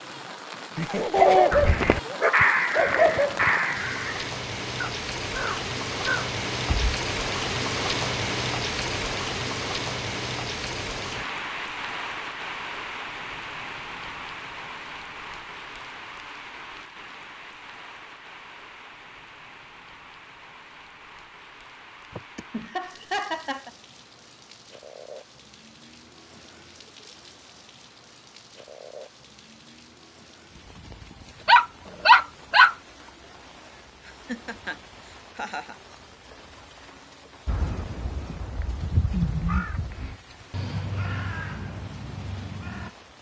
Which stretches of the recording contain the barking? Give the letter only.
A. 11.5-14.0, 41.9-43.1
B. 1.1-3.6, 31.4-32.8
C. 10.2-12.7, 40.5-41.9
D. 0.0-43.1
B.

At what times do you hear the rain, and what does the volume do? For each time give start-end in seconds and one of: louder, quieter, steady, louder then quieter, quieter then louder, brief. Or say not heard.
0.0-43.1 quieter.